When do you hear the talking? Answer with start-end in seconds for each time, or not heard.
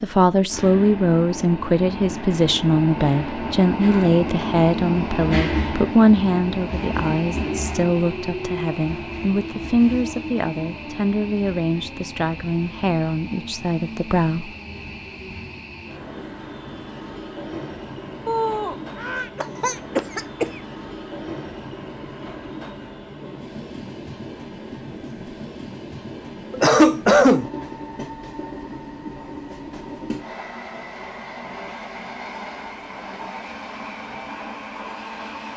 0.0-14.6.